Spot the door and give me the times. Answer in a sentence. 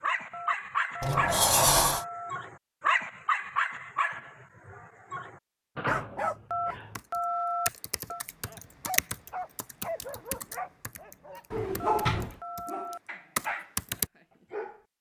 You can hear the door from 1.0 to 2.0 s, from 5.8 to 7.0 s and from 11.5 to 12.4 s.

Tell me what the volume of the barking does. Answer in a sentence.
The volume of the barking goes down.